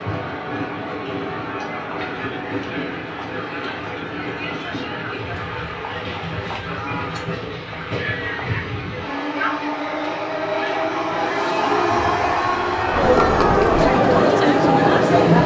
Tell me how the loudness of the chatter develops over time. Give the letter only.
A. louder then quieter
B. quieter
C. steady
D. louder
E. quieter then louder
D.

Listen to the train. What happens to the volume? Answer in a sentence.
The loudness of the train goes up.